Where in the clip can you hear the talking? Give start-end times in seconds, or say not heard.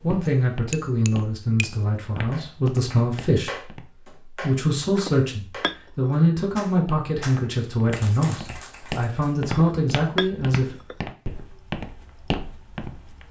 0.0-10.8.